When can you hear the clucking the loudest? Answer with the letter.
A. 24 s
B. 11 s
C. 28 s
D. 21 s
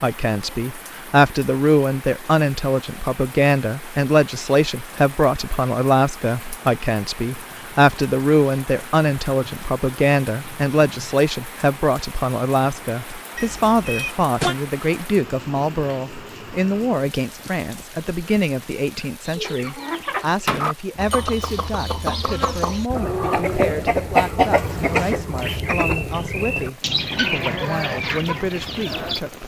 A.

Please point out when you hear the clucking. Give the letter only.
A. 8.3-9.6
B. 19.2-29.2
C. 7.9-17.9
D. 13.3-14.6
B.